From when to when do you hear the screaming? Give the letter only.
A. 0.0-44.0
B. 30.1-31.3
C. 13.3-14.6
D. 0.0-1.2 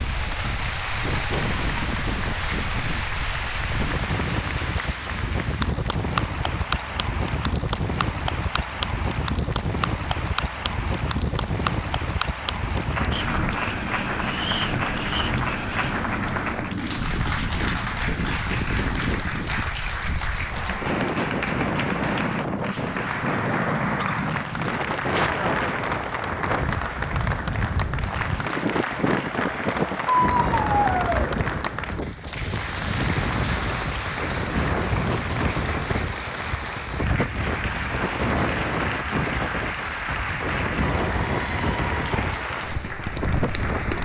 B.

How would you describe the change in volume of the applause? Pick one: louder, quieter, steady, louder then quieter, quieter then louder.
steady.